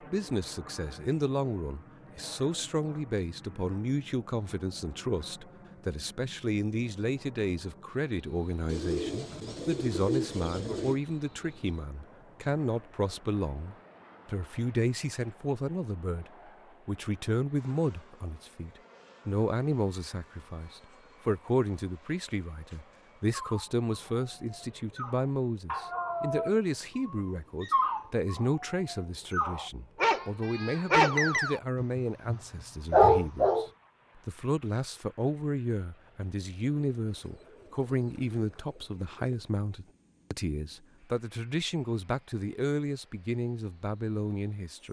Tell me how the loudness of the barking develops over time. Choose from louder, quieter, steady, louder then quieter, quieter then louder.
louder.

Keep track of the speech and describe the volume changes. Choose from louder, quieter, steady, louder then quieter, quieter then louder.
steady.